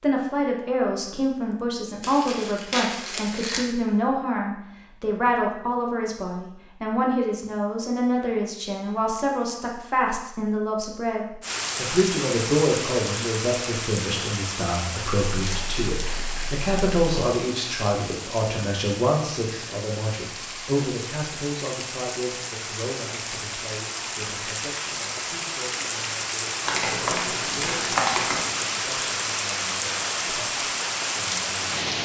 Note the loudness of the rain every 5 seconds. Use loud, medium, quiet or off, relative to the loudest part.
off, off, loud, medium, medium, loud, loud.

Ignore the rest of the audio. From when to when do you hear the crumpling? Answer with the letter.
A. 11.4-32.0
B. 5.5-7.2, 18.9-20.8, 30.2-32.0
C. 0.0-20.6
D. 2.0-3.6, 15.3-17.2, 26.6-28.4
D.